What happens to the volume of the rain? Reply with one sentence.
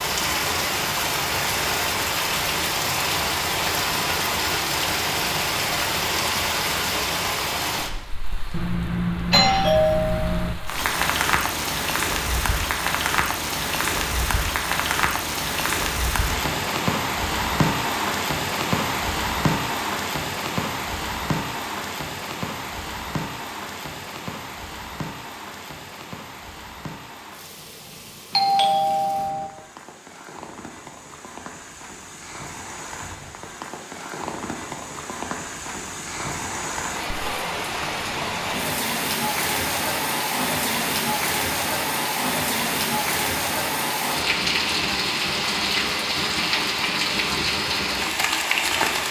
The loudness of the rain goes down, then up.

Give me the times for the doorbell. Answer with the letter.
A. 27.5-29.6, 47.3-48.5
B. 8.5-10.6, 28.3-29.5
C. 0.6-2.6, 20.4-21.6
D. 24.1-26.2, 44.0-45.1
B.